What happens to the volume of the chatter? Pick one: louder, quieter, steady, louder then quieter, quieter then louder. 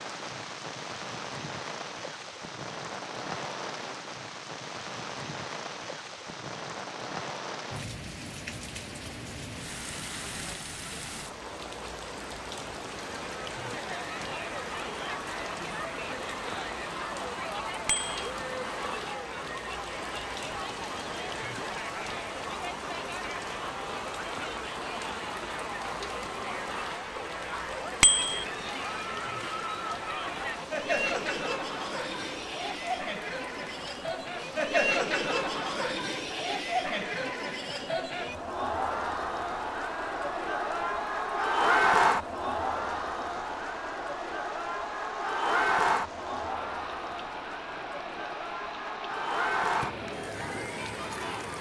louder.